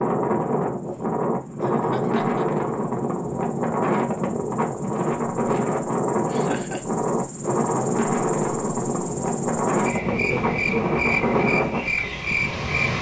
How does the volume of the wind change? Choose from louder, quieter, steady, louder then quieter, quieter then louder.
steady.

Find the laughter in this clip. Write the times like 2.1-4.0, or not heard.
1.6-2.5, 6.3-6.8, 10.1-10.9.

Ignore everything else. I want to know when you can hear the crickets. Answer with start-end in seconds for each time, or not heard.
0.1-12.9.